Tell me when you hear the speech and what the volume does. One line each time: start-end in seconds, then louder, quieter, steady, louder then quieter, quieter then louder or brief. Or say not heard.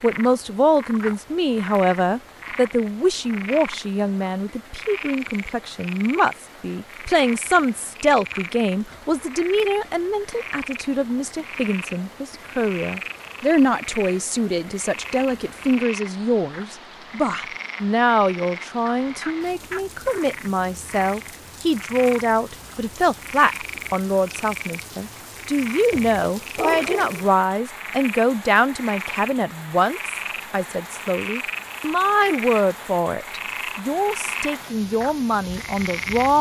0.0-36.3 steady.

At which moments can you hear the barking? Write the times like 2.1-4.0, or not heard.
25.9-27.3.